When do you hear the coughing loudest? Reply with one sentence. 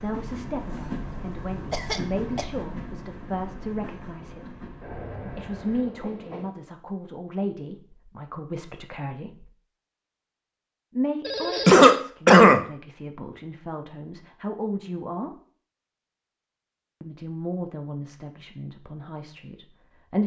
The volume of the coughing peaks at 12 seconds.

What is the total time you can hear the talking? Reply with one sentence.
You can hear the talking for 16 seconds altogether.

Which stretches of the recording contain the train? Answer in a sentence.
You can hear the train from 0.0 to 6.5 s.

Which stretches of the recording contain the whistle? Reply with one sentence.
The whistle can't be heard in this clip.